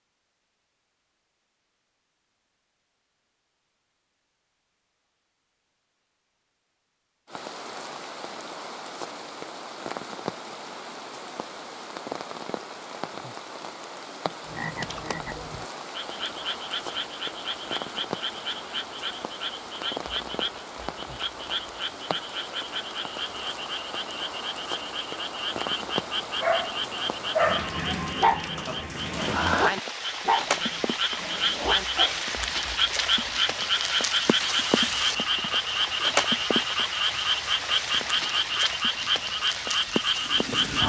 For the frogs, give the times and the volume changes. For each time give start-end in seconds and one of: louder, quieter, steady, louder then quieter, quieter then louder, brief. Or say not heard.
14.4-40.8 louder.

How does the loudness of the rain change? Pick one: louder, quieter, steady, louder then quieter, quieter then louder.
louder.